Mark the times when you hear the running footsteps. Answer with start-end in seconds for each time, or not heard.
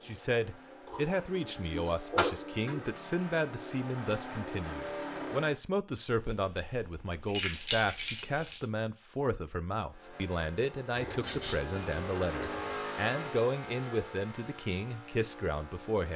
not heard.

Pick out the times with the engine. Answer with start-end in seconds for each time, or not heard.
0.0-5.6, 9.8-16.1.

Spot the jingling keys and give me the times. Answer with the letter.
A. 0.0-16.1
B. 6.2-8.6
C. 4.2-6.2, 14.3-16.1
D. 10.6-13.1
B.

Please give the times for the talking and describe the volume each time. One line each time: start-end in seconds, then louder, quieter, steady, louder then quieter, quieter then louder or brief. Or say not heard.
0.0-16.1 steady.